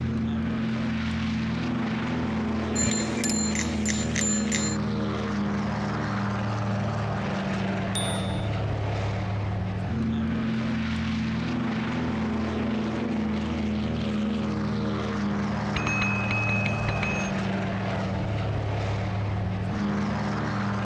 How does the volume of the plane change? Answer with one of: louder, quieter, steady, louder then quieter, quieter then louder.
steady.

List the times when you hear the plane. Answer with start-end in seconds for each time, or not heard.
0.0-20.7.